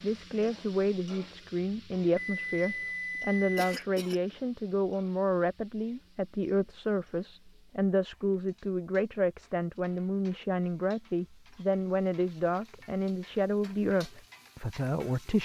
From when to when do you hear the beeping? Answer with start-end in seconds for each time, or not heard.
2.1-3.8.